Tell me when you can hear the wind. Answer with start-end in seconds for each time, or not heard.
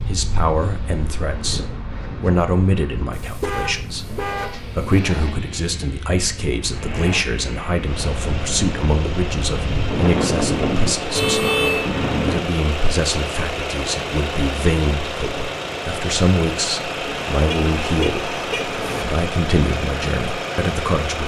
0.0-12.4.